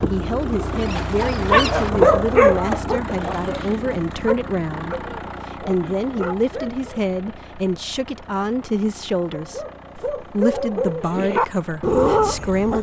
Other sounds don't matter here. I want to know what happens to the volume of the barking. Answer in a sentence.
The volume of the barking goes down, then up.